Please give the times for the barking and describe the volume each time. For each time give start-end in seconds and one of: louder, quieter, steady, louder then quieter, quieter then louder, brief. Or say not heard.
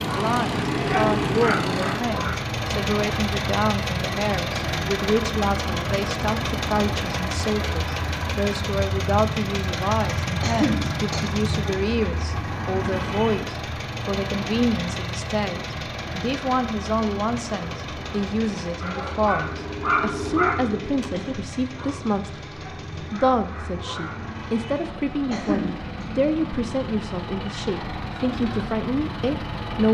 0.0-2.4 brief
17.7-24.3 louder then quieter.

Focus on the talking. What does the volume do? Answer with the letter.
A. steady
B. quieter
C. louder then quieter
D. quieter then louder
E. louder
A.